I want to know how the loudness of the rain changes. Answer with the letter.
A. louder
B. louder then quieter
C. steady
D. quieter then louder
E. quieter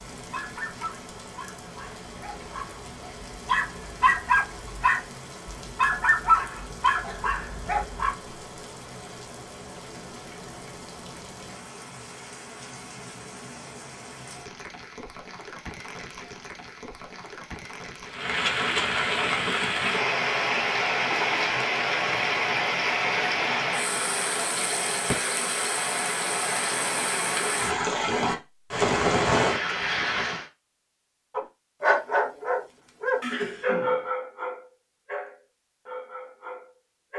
A.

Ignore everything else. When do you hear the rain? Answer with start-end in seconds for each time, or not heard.
0.0-30.4.